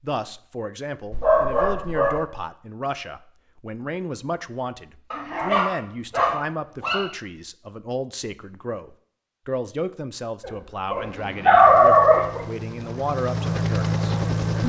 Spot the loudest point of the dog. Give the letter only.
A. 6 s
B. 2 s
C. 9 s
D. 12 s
D.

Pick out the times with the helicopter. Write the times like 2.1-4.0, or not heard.
10.8-14.6.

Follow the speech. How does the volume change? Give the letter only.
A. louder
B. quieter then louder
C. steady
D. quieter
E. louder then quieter
C.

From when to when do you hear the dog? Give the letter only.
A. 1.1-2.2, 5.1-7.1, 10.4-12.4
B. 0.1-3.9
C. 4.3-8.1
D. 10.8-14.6
A.